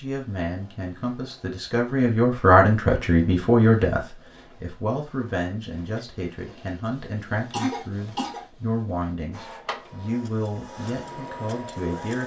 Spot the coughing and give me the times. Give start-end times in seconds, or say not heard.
7.5-8.4.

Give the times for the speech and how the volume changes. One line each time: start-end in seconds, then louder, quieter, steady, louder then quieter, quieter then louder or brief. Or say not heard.
0.0-12.2 quieter.